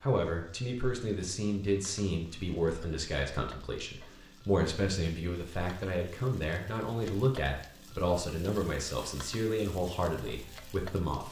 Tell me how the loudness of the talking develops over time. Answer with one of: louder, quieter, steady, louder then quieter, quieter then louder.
steady.